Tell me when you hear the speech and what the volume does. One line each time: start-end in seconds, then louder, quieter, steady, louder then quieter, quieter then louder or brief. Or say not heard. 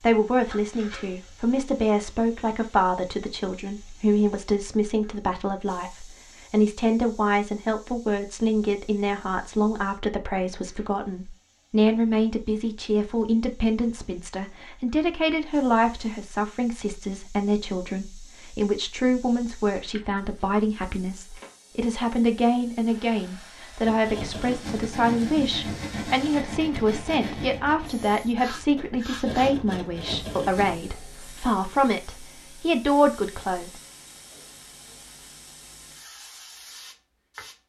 0.0-33.8 steady.